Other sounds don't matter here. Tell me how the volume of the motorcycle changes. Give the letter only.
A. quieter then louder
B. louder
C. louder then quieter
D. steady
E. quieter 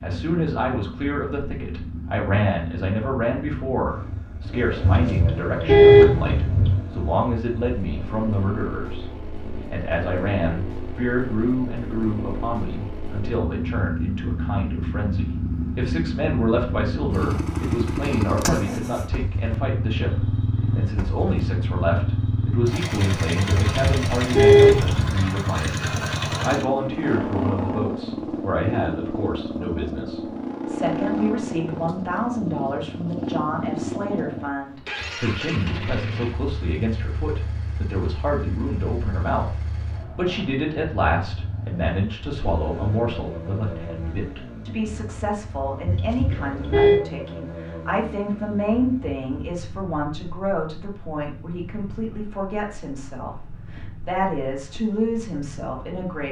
C.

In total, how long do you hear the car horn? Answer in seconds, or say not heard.
5 s.